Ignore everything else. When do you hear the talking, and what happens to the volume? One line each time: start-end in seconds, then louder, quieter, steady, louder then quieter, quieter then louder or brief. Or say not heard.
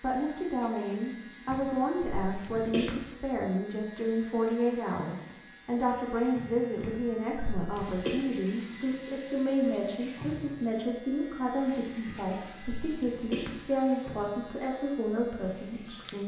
0.0-16.2 steady.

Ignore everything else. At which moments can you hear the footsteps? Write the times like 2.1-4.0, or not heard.
not heard.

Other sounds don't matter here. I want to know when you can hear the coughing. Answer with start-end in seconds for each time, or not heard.
1.4-3.0, 6.8-8.2, 12.1-13.6.